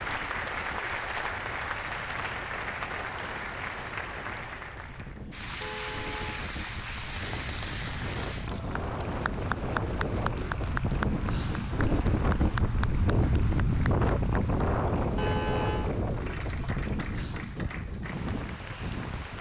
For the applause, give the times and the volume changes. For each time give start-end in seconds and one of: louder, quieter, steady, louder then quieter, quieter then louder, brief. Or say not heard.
0.0-19.3 quieter.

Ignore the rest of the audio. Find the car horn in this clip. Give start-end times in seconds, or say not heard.
5.6-6.5, 15.2-15.9.